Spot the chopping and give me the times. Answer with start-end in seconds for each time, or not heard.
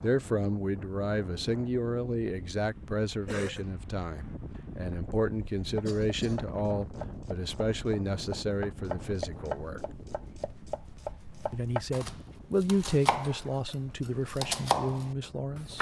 5.8-15.7.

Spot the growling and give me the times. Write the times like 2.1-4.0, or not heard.
not heard.